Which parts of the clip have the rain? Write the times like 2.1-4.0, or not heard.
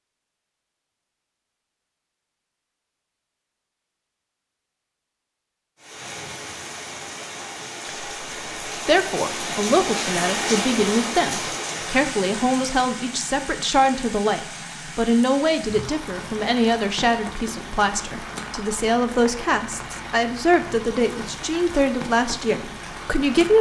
5.8-23.5.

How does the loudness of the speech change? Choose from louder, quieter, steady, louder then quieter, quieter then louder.
steady.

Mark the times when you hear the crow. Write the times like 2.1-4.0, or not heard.
not heard.